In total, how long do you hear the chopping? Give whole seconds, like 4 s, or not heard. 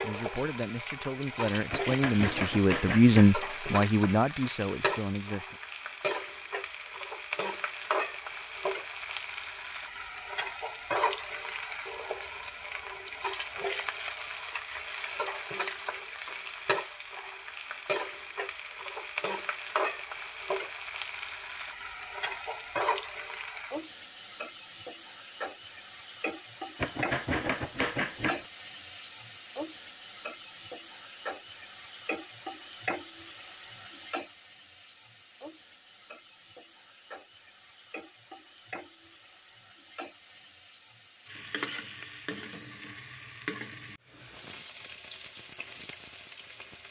3 s.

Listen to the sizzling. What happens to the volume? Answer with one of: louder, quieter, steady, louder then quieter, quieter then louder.
quieter.